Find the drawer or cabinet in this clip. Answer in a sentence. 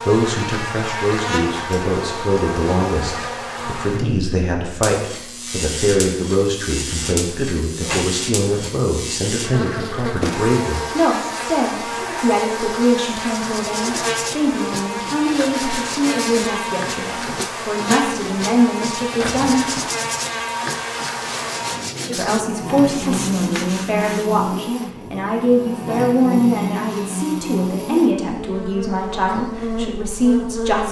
The drawer or cabinet can be heard from 7.8 to 8.8 s and from 19.2 to 19.9 s.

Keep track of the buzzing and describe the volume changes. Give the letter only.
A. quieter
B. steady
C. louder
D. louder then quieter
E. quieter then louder
B.